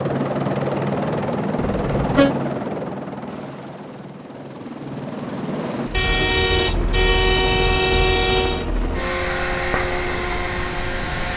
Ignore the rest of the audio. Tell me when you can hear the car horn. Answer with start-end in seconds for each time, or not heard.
1.7-2.4, 5.9-8.7.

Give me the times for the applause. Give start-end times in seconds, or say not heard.
not heard.